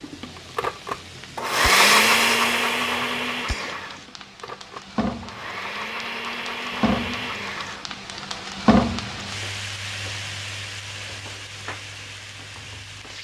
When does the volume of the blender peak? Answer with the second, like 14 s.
2 s.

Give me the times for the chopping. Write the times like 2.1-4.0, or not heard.
not heard.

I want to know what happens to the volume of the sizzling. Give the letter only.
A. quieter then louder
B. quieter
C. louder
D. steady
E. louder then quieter
E.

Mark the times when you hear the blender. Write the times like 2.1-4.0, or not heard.
0.0-8.0.